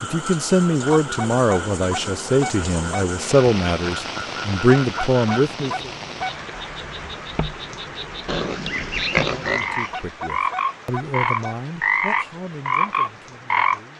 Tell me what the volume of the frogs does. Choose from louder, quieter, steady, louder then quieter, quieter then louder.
louder.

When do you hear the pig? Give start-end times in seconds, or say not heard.
8.2-10.1.